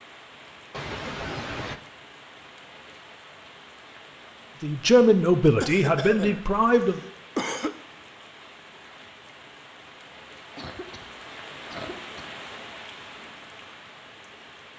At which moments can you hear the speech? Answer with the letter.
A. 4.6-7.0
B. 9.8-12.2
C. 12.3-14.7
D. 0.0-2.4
A.